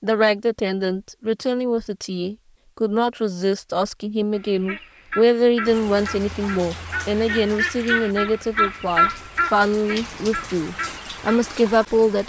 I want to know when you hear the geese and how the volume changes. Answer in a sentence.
The geese can be heard from 4.3 to 11.5 s, getting louder then quieter.